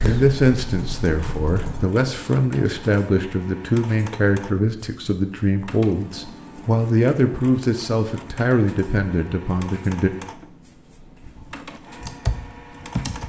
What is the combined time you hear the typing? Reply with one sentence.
The typing can be heard for 4 seconds in total.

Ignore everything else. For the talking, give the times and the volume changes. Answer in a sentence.
The talking can be heard from 0.0 to 10.1 s, at a steady volume.